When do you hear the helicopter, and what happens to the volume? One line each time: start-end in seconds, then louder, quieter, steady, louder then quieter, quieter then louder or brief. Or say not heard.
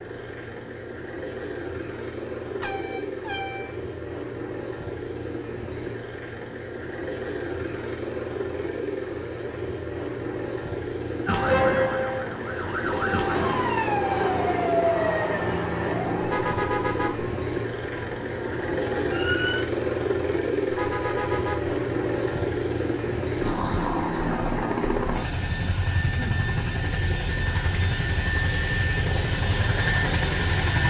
0.0-30.8 louder.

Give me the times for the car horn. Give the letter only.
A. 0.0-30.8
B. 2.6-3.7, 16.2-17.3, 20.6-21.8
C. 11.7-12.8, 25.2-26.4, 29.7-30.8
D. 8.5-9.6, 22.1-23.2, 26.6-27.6
B.